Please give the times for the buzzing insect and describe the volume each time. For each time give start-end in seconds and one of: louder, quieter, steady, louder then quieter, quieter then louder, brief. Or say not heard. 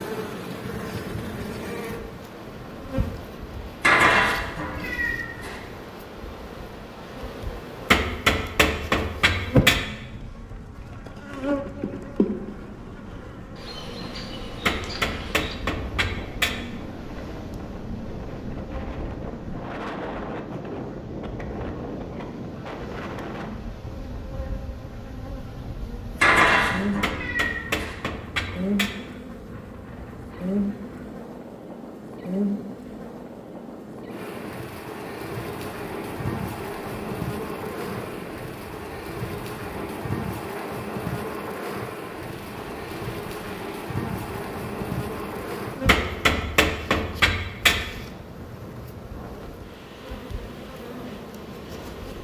0.0-52.1 steady.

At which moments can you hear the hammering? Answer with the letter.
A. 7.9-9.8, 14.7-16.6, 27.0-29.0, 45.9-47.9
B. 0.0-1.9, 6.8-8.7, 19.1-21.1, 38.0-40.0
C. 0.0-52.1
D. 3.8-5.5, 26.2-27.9
A.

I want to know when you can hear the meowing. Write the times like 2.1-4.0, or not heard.
3.8-5.5, 26.2-27.9.